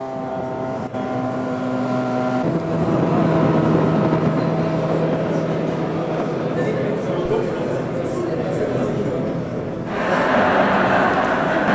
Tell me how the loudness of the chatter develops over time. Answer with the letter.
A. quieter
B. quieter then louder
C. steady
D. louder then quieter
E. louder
E.